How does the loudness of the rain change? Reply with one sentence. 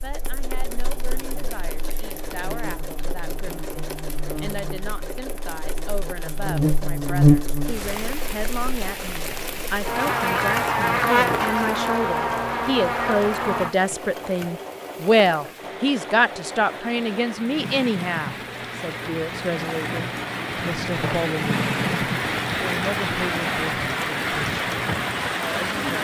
The loudness of the rain goes down, then up.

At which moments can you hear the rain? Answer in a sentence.
The rain can be heard from 7.6 to 26.0 s.